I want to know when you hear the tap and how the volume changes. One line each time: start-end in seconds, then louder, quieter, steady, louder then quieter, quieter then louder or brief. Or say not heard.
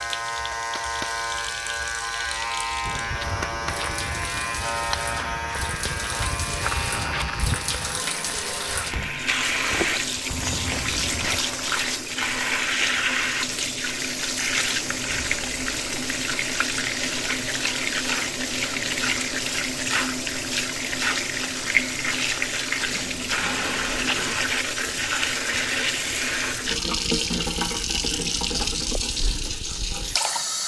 0.0-30.6 louder.